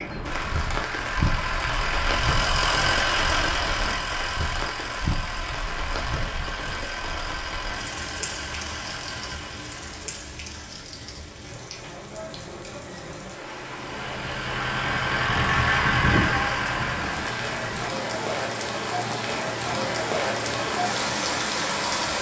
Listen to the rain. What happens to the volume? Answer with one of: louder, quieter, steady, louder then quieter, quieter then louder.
quieter then louder.